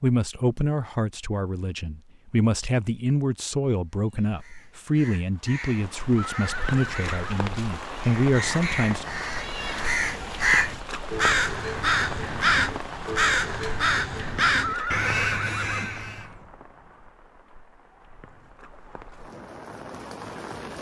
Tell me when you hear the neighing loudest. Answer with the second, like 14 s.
15 s.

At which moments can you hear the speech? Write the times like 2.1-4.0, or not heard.
0.0-9.1.